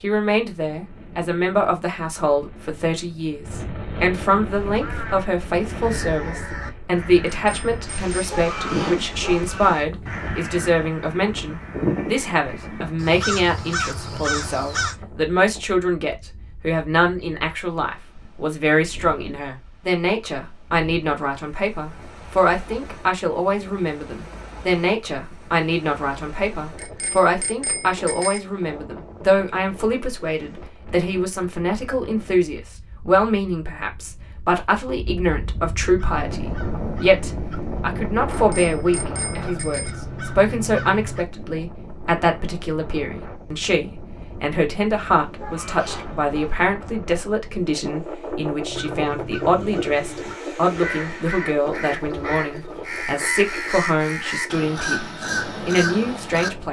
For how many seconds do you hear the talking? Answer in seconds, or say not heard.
56 s.